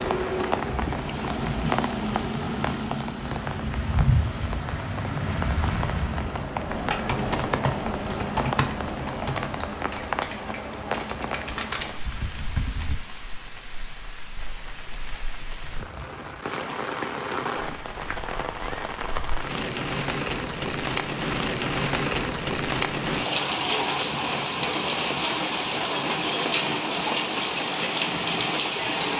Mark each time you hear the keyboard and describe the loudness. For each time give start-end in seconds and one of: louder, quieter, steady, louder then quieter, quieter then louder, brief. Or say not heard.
6.7-13.0 quieter then louder.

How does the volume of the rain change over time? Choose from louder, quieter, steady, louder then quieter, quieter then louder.
quieter then louder.